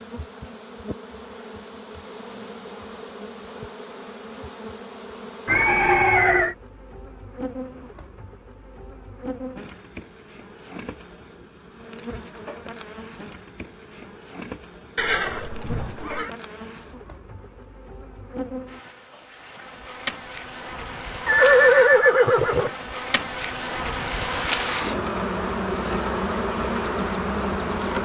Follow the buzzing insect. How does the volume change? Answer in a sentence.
The volume of the buzzing insect goes up.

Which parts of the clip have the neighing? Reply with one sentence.
The neighing can be heard from 5.5 to 6.5 s, from 14.9 to 16.3 s and from 21.2 to 22.7 s.